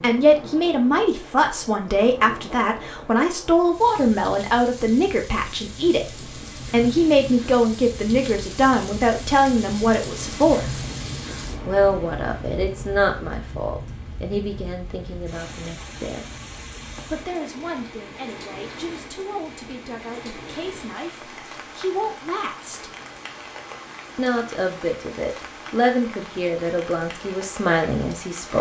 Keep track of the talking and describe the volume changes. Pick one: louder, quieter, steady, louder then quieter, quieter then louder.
quieter then louder.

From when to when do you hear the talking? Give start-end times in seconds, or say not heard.
0.0-10.8, 11.7-16.3, 17.1-22.9, 24.1-28.5.